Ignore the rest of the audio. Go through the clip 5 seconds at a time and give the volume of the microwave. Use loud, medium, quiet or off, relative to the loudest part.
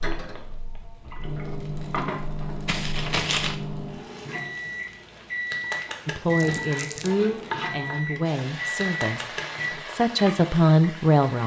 loud, loud, off.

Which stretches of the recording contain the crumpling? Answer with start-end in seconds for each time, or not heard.
2.6-3.5, 6.3-7.1.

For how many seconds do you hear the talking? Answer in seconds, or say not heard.
5 s.